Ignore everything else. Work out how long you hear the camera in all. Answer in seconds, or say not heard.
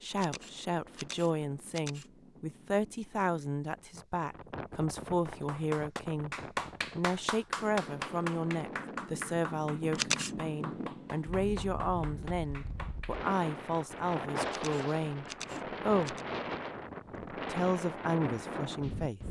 4 s.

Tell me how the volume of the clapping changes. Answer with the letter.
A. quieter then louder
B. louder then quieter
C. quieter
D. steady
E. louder
C.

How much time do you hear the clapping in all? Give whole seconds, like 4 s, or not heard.
8 s.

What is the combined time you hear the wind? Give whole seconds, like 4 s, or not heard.
19 s.